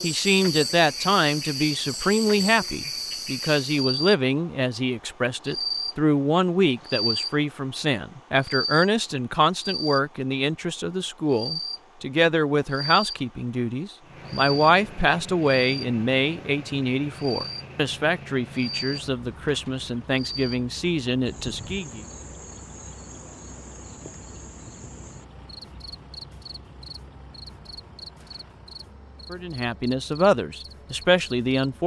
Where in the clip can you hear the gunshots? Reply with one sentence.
You can hear the gunshots from 28.2 to 28.6 s.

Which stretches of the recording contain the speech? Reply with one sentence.
The speech can be heard from 0.0 to 22.0 s and from 29.3 to 31.8 s.